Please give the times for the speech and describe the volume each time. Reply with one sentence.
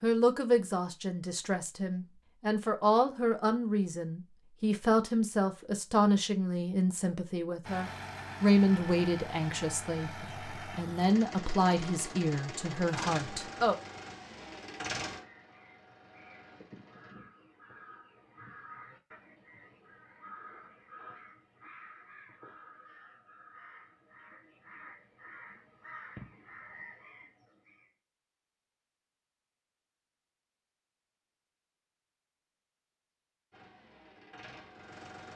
You can hear the speech from 0.0 to 13.8 s, at a steady volume.